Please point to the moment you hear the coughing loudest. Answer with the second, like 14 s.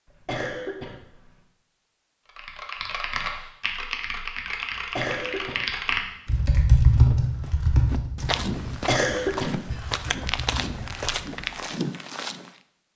9 s.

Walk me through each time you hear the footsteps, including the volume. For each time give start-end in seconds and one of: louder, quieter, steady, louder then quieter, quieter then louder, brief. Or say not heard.
6.8-12.5 louder.